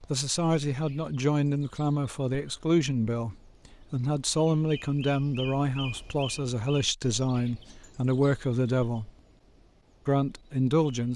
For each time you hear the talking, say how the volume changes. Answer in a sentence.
You can hear the talking from 0.1 to 9.1 s, at a steady volume; and briefly from 10.1 to 11.1 s.